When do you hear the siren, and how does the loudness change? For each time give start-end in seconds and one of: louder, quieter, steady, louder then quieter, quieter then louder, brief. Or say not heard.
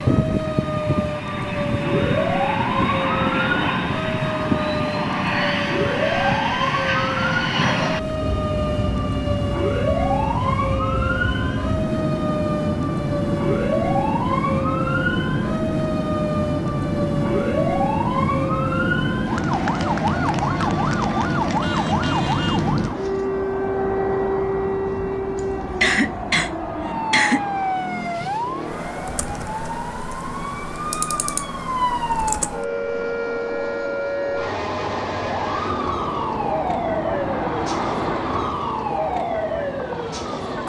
0.0-40.6 steady.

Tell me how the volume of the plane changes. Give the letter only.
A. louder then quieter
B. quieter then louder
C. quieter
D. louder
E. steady
C.